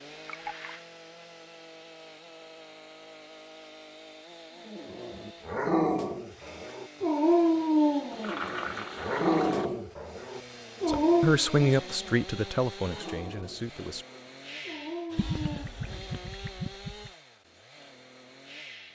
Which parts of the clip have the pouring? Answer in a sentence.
You can hear the pouring from 0.2 to 0.7 s, from 8.1 to 9.7 s and from 15.2 to 17.1 s.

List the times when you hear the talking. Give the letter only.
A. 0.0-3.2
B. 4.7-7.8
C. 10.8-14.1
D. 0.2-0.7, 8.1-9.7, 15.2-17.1
C.